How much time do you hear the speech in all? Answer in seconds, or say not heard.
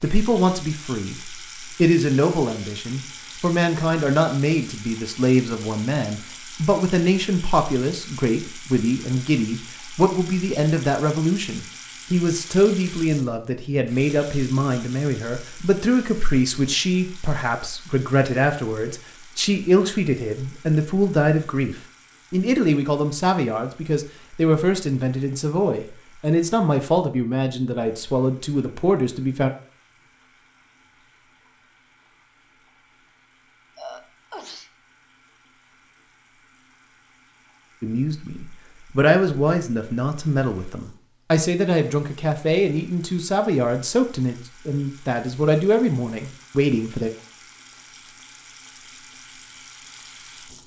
38 s.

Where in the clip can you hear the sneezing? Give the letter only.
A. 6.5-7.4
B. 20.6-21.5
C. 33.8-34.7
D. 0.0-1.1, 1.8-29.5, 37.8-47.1
C.